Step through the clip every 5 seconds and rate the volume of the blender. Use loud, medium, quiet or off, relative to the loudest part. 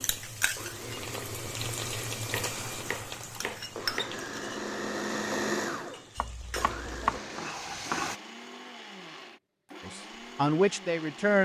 loud, loud, medium.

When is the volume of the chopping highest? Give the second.
7 s.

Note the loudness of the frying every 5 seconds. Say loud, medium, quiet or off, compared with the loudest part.
loud, loud, off.